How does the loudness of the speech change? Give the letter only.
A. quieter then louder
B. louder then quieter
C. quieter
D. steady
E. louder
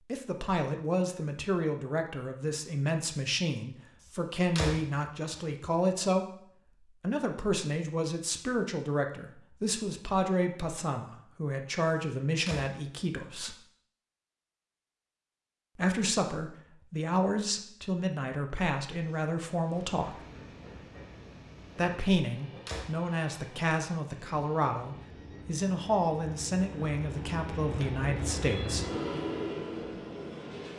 D.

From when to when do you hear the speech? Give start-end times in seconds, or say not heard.
0.1-13.6, 15.8-20.2, 21.8-28.9.